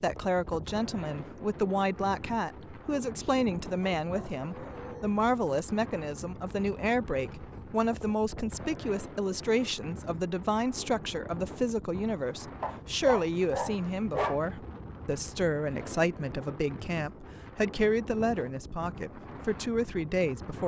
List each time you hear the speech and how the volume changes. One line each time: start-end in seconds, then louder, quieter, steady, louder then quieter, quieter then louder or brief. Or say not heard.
0.0-20.6 steady.